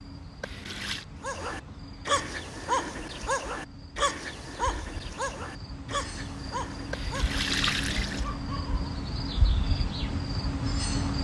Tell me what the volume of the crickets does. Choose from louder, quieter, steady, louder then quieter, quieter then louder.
louder.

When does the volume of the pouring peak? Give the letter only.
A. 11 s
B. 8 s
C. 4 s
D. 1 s
B.